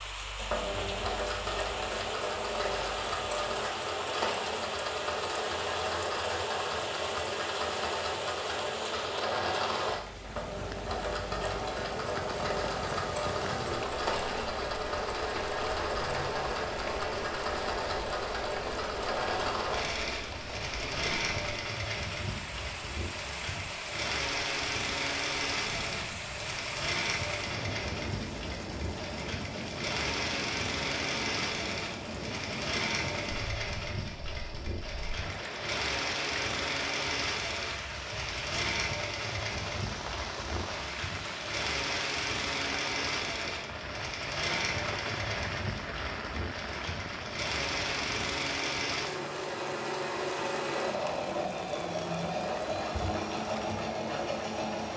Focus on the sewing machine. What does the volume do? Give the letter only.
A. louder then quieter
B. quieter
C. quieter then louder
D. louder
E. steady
E.